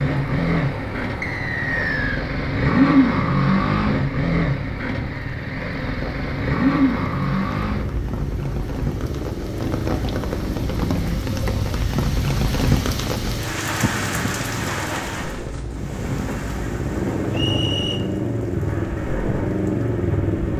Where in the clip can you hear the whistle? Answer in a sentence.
You can hear the whistle from 1.2 to 2.2 s and from 17.3 to 18.0 s.